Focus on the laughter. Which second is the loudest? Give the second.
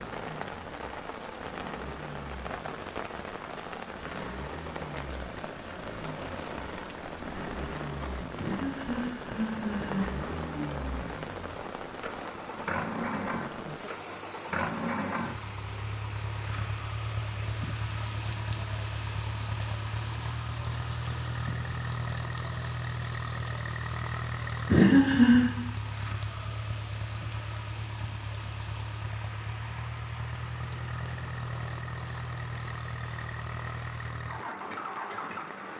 25 s.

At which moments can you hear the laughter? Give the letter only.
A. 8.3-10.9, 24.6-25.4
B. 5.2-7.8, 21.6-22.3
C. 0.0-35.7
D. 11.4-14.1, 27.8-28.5
A.